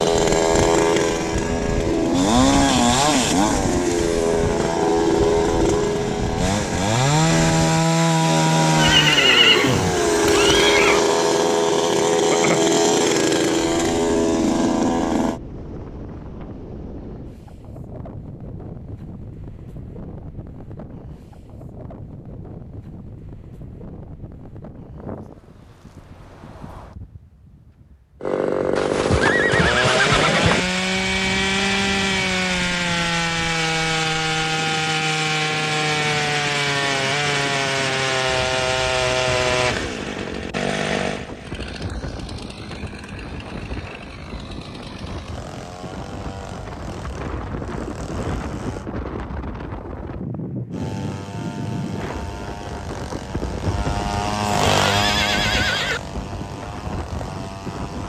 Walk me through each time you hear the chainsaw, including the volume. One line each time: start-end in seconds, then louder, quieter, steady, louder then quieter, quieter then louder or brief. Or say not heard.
0.0-15.4 steady
28.2-48.9 quieter
50.7-58.0 louder then quieter.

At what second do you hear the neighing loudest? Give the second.
9 s.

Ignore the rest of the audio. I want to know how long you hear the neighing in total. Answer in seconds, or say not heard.
6 s.